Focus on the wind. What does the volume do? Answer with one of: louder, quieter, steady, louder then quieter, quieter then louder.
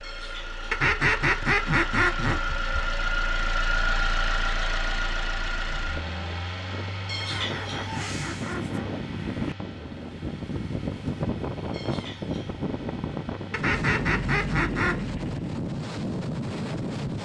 louder.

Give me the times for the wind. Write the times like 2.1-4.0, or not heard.
5.5-17.1.